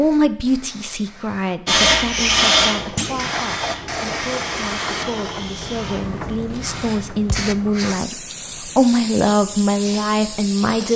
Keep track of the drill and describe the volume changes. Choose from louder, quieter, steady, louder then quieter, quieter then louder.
quieter.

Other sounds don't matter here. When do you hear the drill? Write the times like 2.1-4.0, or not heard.
1.6-7.0.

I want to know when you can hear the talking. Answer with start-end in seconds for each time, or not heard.
0.0-10.9.